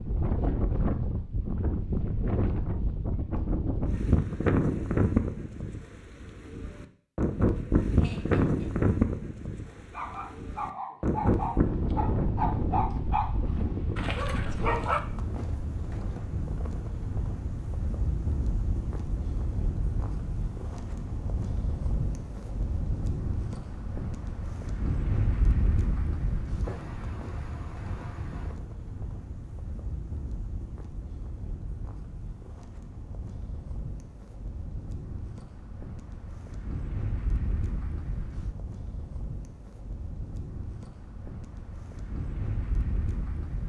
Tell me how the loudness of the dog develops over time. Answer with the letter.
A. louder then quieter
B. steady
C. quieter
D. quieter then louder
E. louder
A.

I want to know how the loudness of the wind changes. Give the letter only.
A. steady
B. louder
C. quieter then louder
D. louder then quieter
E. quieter
E.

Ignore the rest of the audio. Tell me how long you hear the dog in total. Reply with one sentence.
You can hear the dog for 5 seconds altogether.